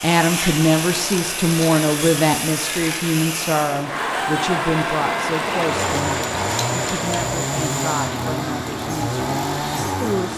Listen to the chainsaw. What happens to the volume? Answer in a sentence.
The volume of the chainsaw stays about the same.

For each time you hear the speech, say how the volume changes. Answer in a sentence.
You can hear the speech from 0.0 to 10.3 s, getting quieter.